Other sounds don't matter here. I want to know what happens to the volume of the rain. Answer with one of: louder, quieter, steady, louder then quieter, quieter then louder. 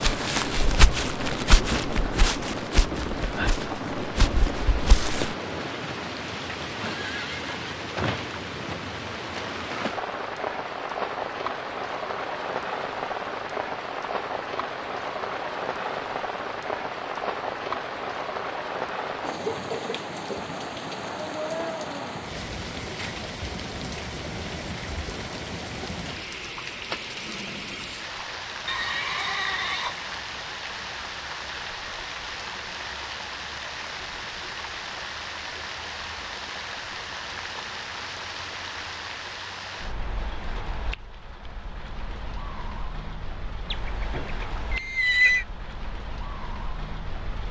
quieter.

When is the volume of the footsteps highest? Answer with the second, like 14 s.
1 s.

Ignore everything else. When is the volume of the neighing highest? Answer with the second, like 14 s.
45 s.